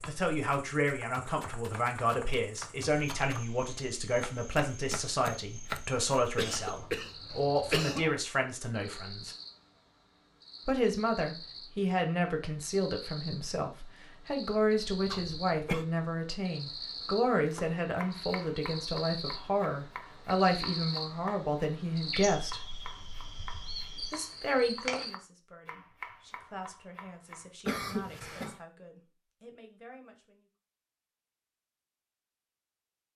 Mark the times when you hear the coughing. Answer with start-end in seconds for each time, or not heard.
6.3-8.1, 15.1-15.8, 27.6-28.6.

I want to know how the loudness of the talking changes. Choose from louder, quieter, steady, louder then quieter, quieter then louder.
quieter.